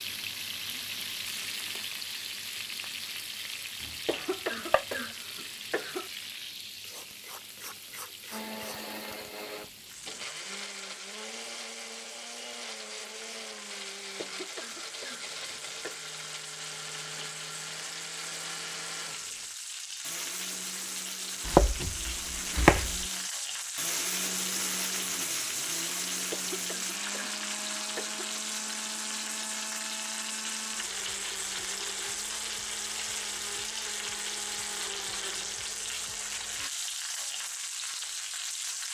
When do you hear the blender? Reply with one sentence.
You can hear the blender from 8.3 to 36.7 s.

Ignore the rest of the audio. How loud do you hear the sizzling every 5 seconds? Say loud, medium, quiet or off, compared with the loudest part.
loud, medium, medium, medium, loud, loud, loud, loud.